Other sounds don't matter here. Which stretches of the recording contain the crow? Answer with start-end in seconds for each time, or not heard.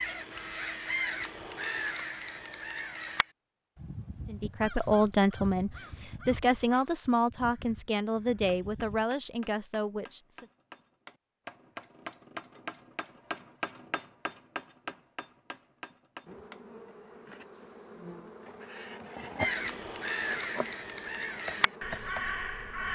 0.0-9.1, 19.4-22.9.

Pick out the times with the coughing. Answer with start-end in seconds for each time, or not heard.
not heard.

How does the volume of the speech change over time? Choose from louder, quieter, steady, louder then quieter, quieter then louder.
quieter.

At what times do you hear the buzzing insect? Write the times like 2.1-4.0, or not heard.
16.2-22.9.